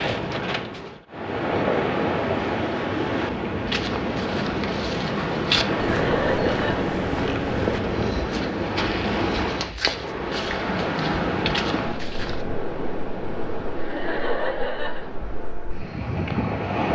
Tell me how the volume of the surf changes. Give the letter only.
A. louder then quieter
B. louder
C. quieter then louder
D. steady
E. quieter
E.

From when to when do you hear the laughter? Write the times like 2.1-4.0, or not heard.
5.7-6.9, 13.8-15.1.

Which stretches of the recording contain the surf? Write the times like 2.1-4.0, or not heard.
0.0-16.8.